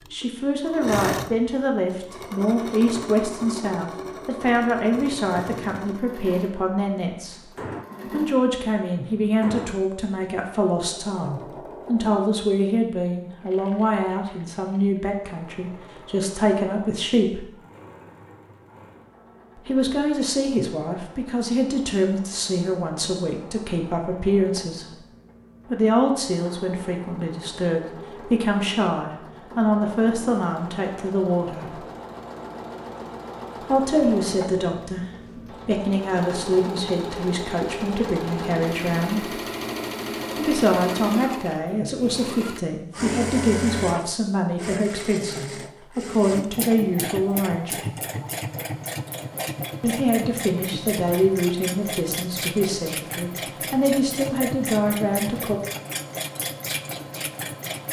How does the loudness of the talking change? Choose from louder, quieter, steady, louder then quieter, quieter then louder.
steady.